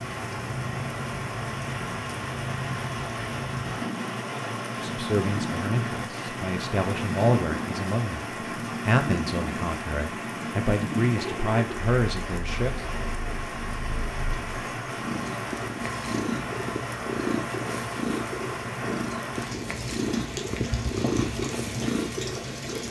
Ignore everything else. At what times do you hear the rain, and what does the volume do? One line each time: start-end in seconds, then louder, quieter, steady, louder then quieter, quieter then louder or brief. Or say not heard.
0.0-22.8 steady.